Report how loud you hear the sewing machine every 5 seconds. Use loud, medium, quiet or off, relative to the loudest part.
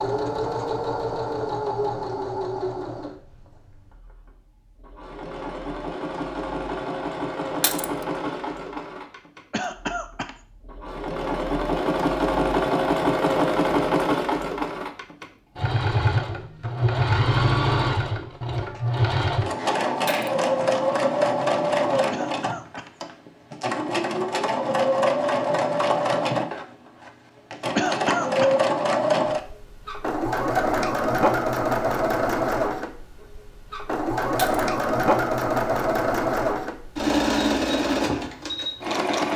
medium, medium, loud, loud, loud, loud, loud, loud.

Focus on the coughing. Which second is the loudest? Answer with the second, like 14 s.
28 s.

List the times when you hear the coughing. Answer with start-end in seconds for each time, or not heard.
9.5-10.3, 22.1-22.9, 27.8-28.6.